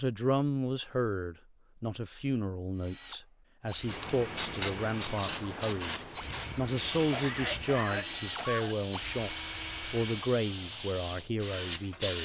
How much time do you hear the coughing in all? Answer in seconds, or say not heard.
2 s.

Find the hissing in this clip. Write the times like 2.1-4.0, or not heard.
3.9-12.2.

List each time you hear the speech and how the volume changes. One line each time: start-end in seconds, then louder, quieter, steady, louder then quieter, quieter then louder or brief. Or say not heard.
0.0-12.2 steady.